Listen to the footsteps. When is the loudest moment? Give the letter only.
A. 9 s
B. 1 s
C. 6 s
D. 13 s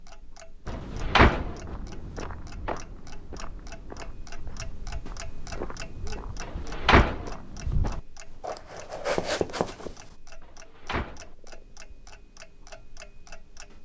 A.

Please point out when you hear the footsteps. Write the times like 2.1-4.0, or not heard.
0.7-10.2.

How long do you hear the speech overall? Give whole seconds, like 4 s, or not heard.
not heard.